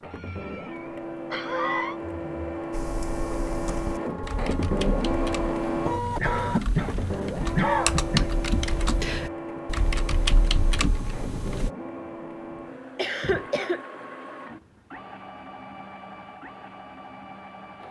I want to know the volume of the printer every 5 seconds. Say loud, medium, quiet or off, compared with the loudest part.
loud, loud, medium, quiet.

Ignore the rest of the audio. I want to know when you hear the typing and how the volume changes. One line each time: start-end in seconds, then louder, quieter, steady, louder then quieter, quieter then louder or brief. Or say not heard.
2.7-11.7 louder.